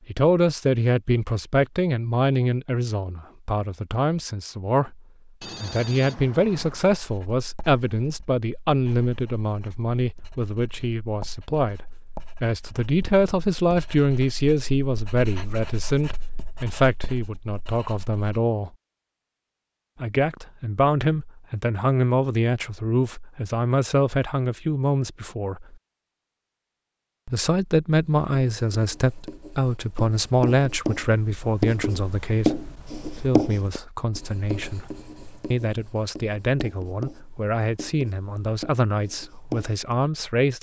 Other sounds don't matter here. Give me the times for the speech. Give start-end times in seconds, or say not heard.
0.1-5.0, 5.6-18.7, 20.0-25.8, 27.2-40.5.